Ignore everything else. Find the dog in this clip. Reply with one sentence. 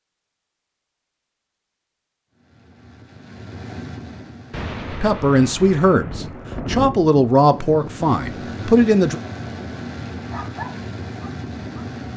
You can hear the dog from 10.3 to 11.9 s.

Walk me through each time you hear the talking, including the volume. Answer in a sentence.
The talking can be heard from 4.9 to 9.2 s, getting quieter then louder.